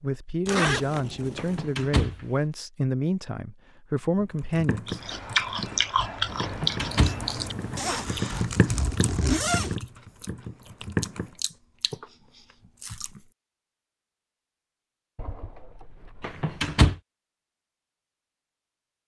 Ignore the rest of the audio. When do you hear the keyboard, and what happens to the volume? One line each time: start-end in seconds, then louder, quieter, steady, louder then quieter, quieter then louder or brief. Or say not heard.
4.2-11.3 louder then quieter.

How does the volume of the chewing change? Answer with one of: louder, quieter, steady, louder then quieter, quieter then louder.
quieter.